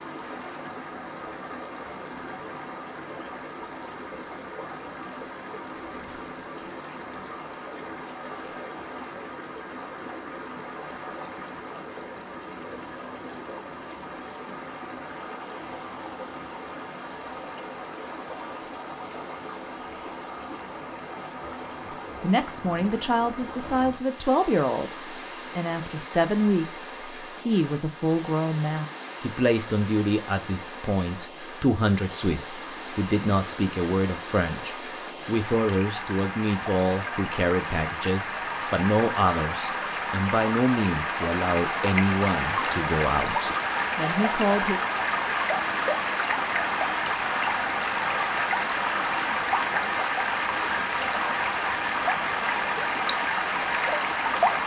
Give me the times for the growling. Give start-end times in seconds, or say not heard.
not heard.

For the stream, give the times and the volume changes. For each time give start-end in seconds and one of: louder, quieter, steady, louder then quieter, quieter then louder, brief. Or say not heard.
0.0-54.6 louder.